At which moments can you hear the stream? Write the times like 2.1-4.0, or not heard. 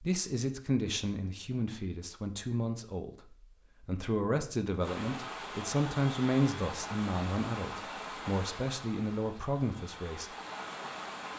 4.8-11.3.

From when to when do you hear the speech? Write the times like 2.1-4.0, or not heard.
0.0-10.3.